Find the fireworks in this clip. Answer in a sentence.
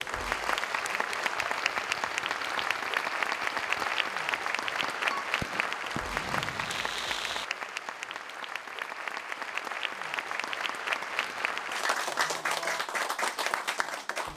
You can hear the fireworks from 1.4 to 7.5 s.